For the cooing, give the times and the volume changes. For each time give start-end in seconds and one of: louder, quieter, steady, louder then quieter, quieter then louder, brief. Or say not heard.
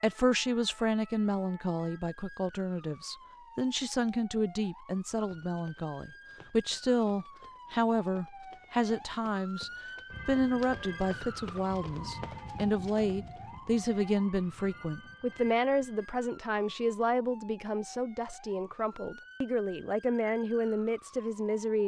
not heard.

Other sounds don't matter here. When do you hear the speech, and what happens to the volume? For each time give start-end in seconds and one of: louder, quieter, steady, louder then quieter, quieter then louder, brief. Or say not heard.
0.0-21.8 steady.